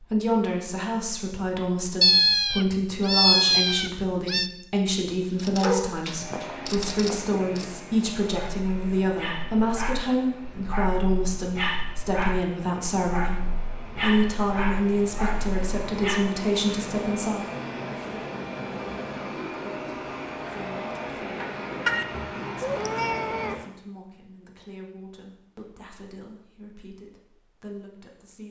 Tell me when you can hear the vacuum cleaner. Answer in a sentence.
The vacuum cleaner can be heard from 6.0 to 23.7 s.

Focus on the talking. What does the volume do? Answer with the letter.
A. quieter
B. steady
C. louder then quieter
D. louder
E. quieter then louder
A.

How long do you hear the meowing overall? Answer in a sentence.
You can hear the meowing for 4 seconds altogether.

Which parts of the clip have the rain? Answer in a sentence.
You can't hear the rain here.